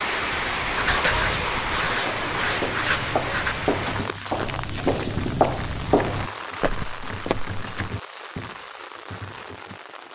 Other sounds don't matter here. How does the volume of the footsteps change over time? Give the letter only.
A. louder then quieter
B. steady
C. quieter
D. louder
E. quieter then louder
D.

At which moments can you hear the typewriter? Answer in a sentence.
The typewriter can be heard from 3.7 to 9.8 s.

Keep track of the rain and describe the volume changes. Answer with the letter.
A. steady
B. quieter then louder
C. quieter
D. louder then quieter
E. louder
C.